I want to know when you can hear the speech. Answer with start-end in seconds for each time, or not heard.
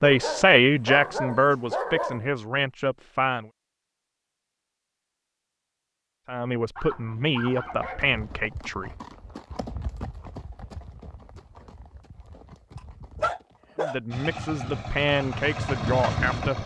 0.0-3.5, 6.2-8.9, 13.8-16.6.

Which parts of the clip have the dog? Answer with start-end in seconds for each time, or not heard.
0.0-2.3, 6.8-8.2, 13.2-14.0.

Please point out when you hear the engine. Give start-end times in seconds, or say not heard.
14.1-16.6.